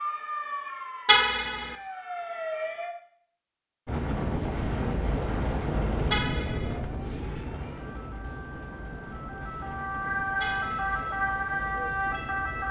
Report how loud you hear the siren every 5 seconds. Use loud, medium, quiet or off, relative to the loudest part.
medium, quiet, loud.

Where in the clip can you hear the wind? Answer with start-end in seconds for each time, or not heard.
3.9-12.6.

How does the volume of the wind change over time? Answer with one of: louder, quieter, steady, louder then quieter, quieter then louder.
quieter.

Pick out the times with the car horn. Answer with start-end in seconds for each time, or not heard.
1.1-1.8, 6.1-6.8, 10.4-11.1.